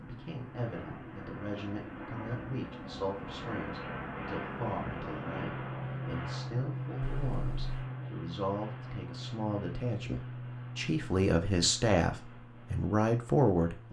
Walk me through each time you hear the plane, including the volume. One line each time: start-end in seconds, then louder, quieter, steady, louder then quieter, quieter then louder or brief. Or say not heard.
0.0-13.8 louder then quieter.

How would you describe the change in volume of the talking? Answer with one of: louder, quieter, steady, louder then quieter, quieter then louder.
louder.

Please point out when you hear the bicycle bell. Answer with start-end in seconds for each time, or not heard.
not heard.